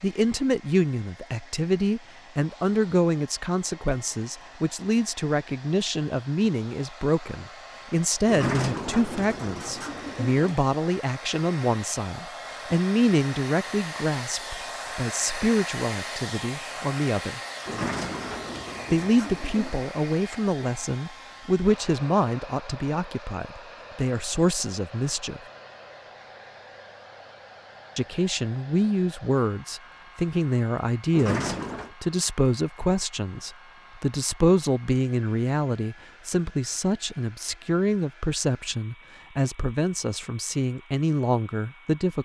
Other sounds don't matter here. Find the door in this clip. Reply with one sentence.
The door can be heard from 8.2 to 10.6 s, from 17.6 to 19.9 s and from 31.1 to 31.9 s.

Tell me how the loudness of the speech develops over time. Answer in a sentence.
The loudness of the speech stays about the same.